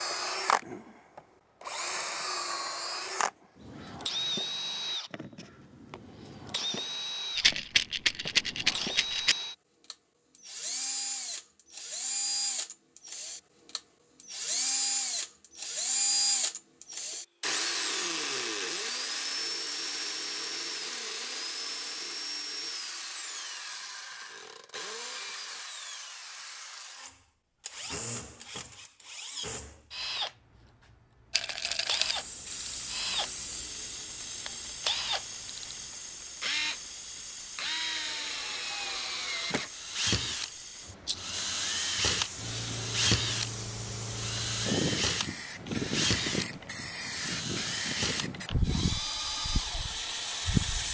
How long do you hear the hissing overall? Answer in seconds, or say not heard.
19 s.